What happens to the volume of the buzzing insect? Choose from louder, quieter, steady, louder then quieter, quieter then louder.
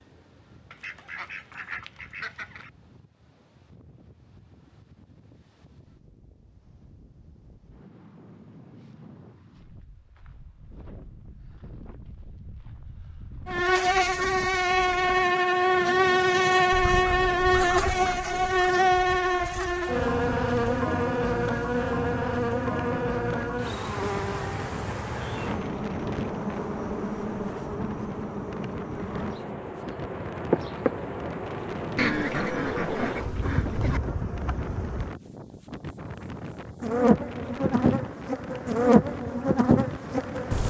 quieter then louder.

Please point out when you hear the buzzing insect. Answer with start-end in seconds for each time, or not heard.
13.4-40.6.